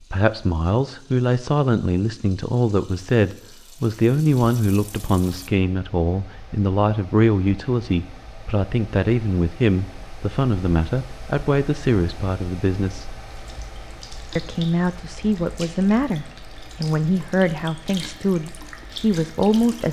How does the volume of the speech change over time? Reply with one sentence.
The volume of the speech stays about the same.